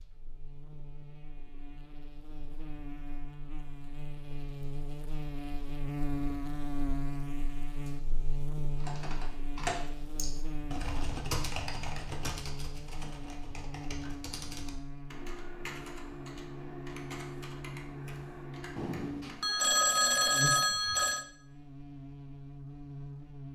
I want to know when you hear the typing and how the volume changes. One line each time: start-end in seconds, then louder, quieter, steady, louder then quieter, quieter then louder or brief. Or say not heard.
8.8-19.4 quieter.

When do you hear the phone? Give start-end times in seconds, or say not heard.
18.8-21.2.